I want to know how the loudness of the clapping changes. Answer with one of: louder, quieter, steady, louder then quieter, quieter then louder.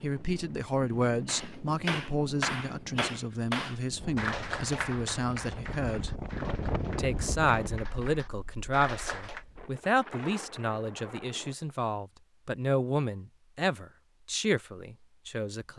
quieter then louder.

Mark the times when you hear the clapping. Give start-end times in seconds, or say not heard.
1.2-9.4.